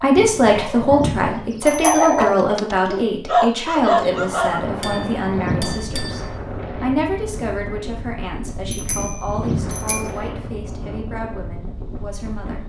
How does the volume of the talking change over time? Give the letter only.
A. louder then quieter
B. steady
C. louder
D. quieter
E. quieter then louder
D.